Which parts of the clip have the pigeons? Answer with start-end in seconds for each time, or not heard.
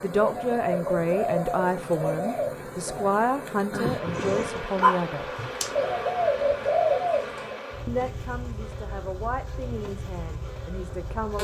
0.2-3.1, 5.8-7.5.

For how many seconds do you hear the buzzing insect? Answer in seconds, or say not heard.
11 s.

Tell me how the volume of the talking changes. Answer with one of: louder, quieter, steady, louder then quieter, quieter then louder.
quieter.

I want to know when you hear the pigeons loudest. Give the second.
7 s.